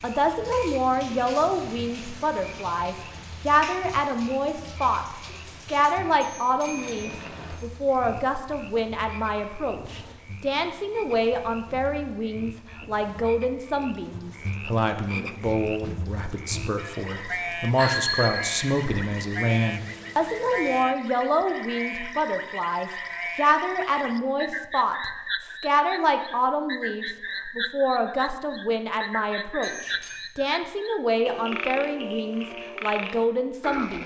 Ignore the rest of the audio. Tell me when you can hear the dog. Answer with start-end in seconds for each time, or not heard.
not heard.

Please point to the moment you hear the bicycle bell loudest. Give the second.
18 s.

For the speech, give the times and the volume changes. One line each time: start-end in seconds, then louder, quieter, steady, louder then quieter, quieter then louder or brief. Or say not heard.
0.0-34.0 steady.